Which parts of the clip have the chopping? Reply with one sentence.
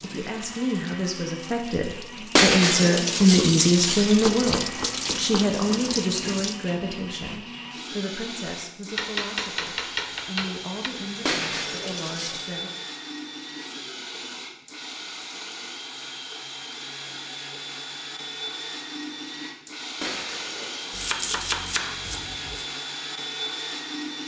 The chopping can be heard from 4.2 to 5.5 s, from 8.9 to 10.9 s and from 20.9 to 22.6 s.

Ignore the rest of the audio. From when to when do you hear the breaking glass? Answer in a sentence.
The breaking glass can be heard from 2.4 to 4.0 s, from 11.2 to 12.5 s and from 20.0 to 21.1 s.